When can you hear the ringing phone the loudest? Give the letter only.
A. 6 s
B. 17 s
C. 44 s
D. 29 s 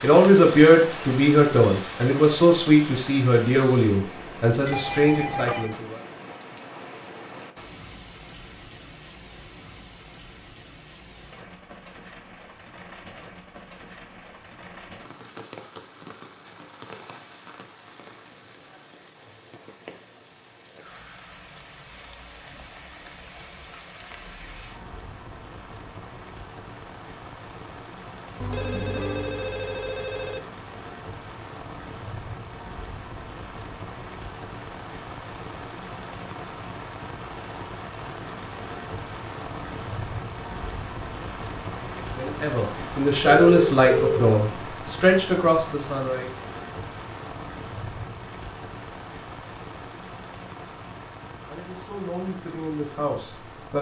C.